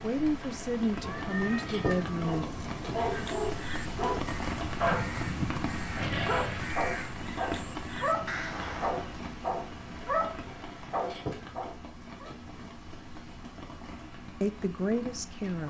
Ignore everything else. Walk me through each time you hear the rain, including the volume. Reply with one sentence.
The rain can be heard from 0.0 to 15.6 s, getting quieter.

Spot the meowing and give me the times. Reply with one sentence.
The meowing can be heard from 1.0 to 3.0 s.